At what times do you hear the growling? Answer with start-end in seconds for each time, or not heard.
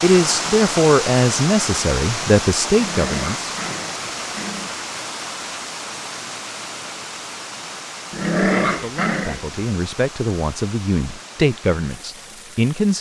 2.7-4.8, 8.1-9.6.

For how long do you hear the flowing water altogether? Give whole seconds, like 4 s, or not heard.
13 s.